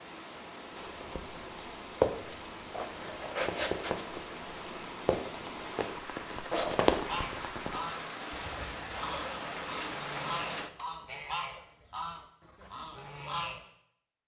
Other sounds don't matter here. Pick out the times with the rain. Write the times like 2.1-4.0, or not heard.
0.0-10.7.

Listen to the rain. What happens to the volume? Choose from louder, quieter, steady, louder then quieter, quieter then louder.
louder.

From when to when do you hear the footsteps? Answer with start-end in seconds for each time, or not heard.
0.7-7.7.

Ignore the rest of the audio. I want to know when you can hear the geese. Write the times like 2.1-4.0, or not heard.
7.0-13.7.